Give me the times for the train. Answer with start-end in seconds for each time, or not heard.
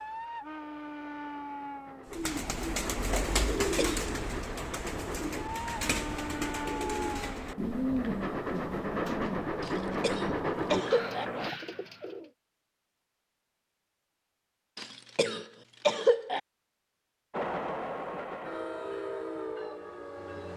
0.0-11.6, 17.3-20.5.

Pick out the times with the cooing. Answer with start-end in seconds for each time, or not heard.
2.1-12.3.